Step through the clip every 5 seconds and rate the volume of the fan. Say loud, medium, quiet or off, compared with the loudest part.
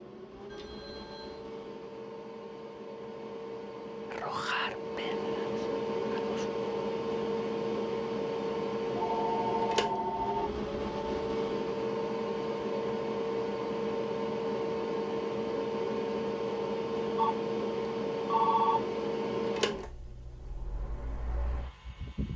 medium, loud, loud, loud, quiet.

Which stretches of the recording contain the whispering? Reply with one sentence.
You can hear the whispering from 4.1 to 6.5 s.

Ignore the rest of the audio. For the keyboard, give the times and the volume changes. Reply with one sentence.
The keyboard can't be heard in this clip.